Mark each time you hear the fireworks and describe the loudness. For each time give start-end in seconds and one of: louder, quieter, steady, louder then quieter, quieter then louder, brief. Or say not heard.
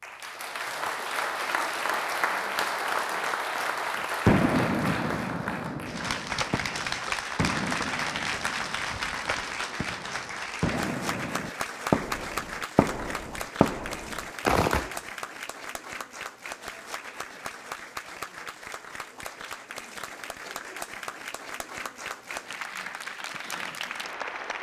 4.2-14.9 quieter then louder.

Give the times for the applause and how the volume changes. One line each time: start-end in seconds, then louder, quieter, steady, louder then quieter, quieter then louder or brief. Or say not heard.
0.0-24.5 quieter.